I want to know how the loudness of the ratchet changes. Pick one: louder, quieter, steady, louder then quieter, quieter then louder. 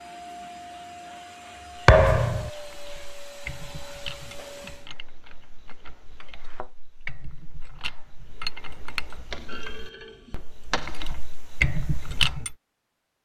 quieter then louder.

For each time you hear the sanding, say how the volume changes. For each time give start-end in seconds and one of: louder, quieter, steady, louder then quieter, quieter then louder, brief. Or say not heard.
not heard.